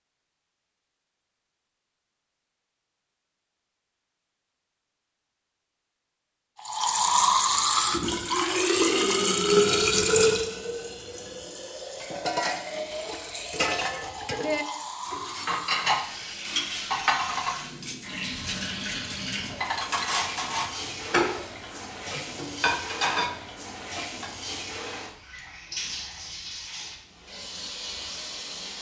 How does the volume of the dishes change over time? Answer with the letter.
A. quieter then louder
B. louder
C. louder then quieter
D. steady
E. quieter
D.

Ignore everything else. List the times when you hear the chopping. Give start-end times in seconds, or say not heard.
not heard.